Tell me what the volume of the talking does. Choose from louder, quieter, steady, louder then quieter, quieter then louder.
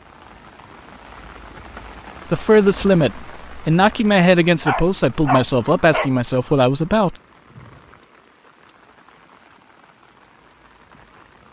steady.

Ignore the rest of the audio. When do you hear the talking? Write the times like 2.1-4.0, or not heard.
2.3-7.2.